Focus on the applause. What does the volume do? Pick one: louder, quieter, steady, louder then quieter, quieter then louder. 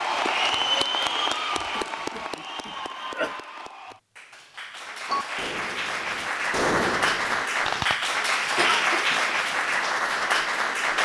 quieter then louder.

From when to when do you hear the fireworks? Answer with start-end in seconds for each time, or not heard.
5.0-8.0.